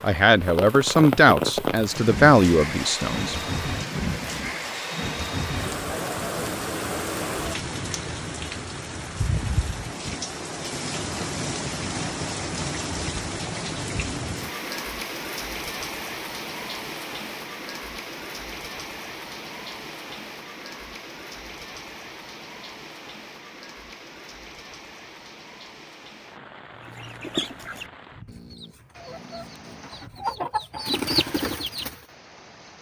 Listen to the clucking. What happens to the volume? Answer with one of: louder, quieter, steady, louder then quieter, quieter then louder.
quieter then louder.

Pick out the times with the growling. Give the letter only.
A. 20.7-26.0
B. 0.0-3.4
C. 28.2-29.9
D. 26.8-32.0
C.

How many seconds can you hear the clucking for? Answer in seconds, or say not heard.
5 s.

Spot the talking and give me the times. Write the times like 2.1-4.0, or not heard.
0.0-3.4.